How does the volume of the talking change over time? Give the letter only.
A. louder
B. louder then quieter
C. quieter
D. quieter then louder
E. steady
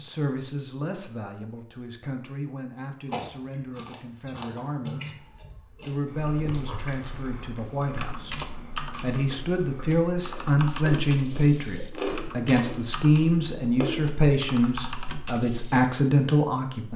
A.